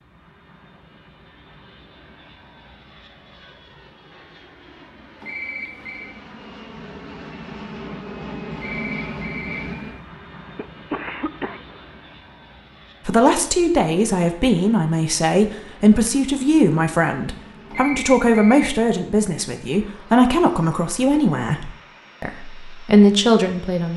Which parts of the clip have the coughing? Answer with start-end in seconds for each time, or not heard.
10.6-11.8.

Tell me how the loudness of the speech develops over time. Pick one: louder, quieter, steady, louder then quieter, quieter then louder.
steady.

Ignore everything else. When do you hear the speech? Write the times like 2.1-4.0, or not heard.
13.1-23.9.